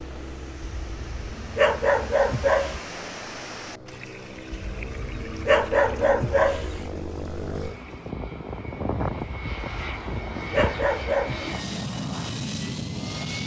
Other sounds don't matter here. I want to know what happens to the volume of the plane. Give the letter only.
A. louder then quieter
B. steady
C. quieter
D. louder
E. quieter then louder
D.